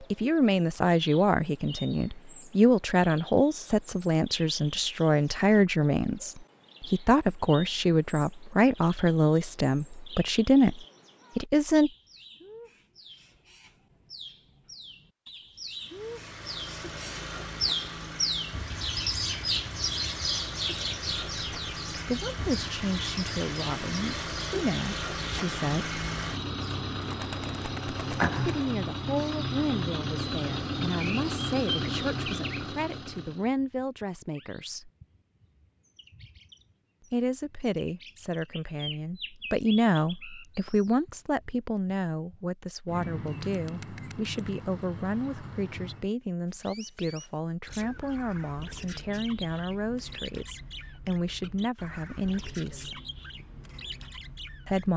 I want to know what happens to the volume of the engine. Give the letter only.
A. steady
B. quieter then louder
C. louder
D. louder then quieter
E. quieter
C.